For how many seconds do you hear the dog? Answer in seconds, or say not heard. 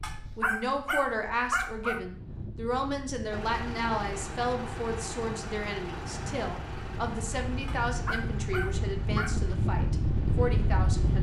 4 s.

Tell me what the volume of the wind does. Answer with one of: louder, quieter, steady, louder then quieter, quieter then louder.
louder.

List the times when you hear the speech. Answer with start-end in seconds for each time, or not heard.
0.3-11.1.